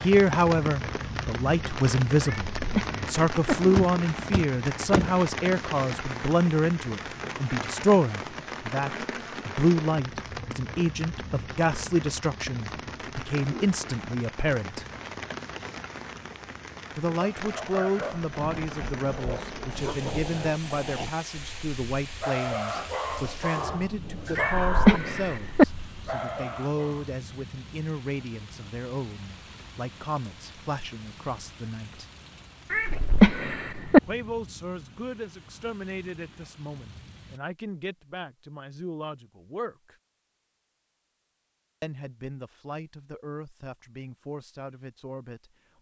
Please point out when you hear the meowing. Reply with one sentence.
The meowing can be heard from 2.2 to 3.5 s, from 24.4 to 25.6 s and from 32.7 to 34.0 s.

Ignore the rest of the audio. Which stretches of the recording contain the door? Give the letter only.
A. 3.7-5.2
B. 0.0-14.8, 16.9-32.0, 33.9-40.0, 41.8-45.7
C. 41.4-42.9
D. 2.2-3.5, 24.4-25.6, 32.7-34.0
A.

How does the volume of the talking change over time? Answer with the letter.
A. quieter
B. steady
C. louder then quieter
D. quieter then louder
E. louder
A.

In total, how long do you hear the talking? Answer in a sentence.
The talking can be heard for 40 seconds in total.